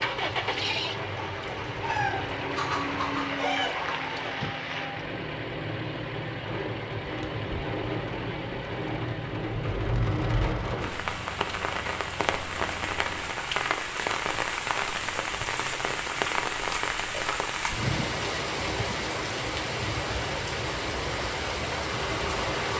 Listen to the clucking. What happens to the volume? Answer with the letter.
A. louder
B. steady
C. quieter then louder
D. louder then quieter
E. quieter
A.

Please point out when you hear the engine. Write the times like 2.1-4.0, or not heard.
0.0-13.4.